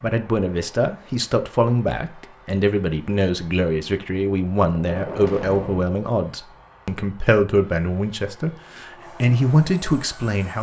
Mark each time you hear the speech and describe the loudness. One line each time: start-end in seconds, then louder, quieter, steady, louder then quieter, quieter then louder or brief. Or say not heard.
0.0-10.5 steady.